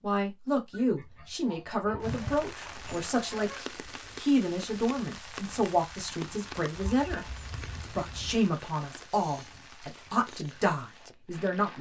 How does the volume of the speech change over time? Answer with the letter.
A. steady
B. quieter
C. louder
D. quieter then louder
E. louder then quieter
A.